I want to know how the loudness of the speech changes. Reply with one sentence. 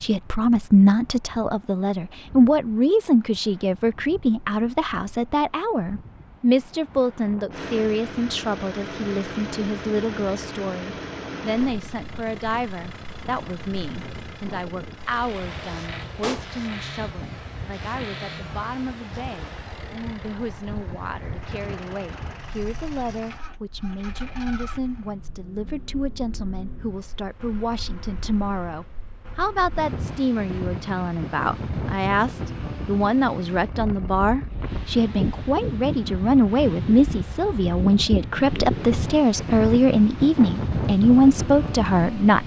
The loudness of the speech goes down, then up.